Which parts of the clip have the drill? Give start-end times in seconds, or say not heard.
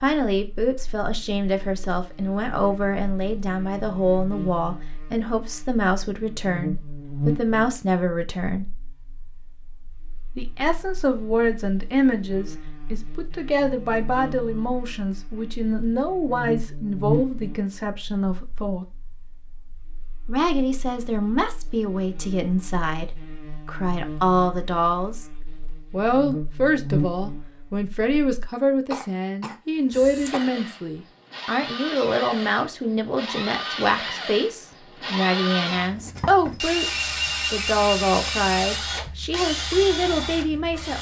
29.9-40.9.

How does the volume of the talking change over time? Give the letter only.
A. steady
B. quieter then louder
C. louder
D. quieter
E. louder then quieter
A.